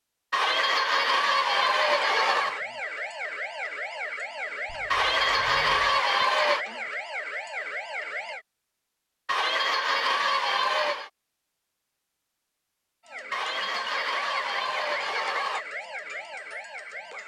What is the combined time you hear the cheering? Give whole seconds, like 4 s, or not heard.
8 s.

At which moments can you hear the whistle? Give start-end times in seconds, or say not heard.
not heard.